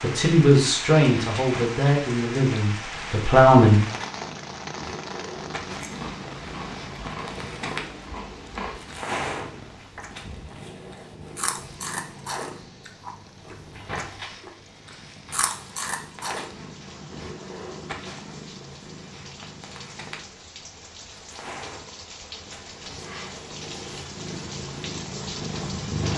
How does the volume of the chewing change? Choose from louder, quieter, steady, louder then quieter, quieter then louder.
louder.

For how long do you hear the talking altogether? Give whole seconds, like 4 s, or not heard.
4 s.